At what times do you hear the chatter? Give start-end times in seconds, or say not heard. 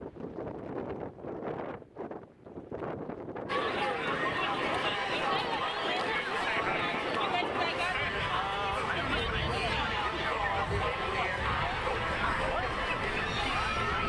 3.5-14.0.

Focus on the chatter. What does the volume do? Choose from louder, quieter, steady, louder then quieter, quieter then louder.
steady.